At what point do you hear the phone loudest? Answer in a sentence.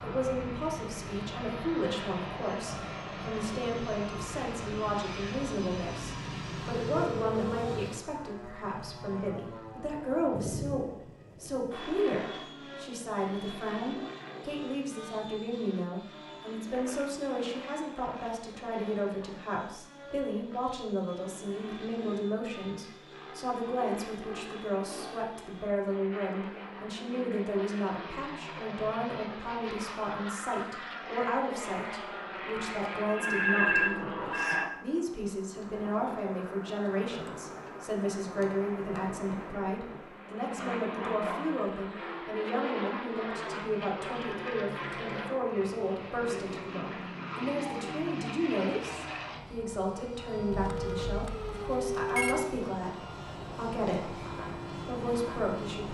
The loudest moment of the phone is at 34 seconds.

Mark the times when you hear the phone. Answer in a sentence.
The phone can be heard from 5.5 to 7.8 s, from 33.0 to 34.7 s and from 50.5 to 52.4 s.